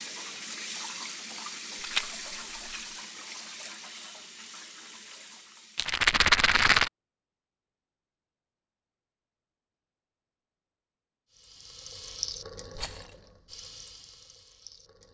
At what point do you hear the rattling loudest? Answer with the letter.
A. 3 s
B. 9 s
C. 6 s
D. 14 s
C.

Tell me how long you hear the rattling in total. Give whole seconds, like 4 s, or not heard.
3 s.